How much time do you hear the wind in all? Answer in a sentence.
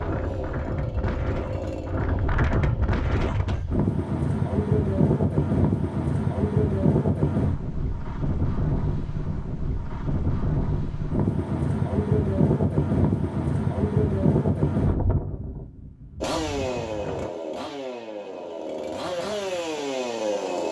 The wind can be heard for 17 seconds in total.